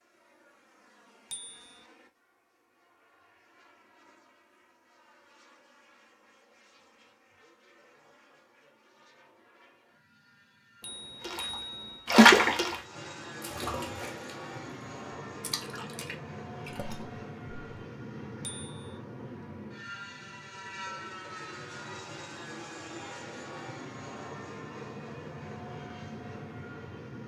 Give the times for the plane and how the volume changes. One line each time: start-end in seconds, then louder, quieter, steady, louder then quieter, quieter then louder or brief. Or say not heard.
0.0-27.2 louder.